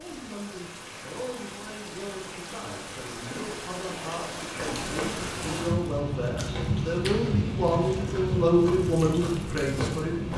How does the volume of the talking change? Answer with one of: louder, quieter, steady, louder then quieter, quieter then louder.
louder.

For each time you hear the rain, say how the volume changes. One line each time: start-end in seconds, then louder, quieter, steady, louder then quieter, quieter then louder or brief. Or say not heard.
0.0-10.3 louder.